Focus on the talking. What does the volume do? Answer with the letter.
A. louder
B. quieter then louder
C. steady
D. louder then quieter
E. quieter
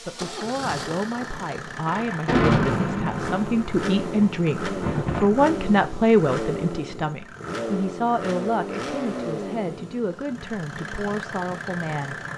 D.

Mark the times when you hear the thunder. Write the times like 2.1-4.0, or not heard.
1.9-5.7.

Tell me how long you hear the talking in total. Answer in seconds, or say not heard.
12 s.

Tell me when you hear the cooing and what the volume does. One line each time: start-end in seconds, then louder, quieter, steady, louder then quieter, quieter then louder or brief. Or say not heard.
not heard.